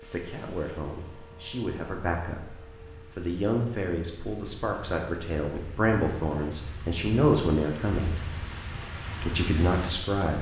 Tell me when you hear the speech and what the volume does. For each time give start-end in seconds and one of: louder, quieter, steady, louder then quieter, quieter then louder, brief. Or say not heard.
0.0-8.2 louder
9.2-10.3 brief.